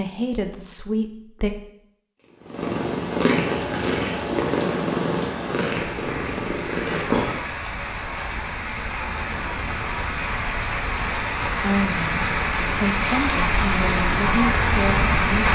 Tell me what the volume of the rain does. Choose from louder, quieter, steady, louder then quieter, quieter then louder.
louder.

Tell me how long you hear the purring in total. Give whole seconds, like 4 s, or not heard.
5 s.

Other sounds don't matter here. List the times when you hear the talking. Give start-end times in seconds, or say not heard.
0.0-1.6, 11.6-15.5.